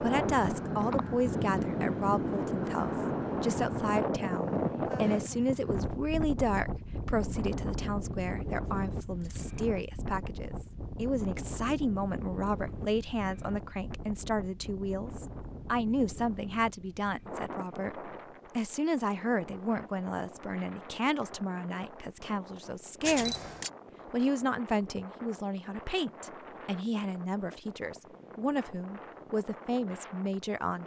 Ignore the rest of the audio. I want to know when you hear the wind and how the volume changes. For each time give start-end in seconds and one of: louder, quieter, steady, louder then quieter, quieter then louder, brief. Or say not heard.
0.0-30.8 quieter.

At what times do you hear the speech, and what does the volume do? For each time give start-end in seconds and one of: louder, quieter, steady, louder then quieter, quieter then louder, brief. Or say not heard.
0.0-23.4 steady
24.1-30.8 steady.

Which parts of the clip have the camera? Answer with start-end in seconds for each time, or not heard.
8.7-9.4, 23.0-23.7.